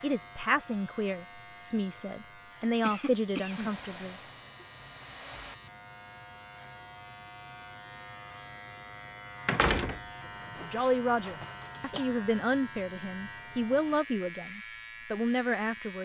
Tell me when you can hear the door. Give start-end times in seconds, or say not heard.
9.4-10.8.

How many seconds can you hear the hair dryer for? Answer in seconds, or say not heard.
2 s.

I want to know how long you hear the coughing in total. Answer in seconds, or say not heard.
2 s.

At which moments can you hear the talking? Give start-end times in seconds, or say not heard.
0.0-4.2, 10.6-16.0.